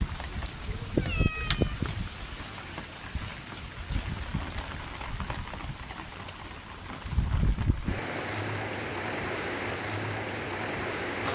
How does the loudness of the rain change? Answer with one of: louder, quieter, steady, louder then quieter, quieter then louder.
quieter then louder.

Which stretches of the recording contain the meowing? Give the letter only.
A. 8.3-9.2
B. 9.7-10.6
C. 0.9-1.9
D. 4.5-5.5
C.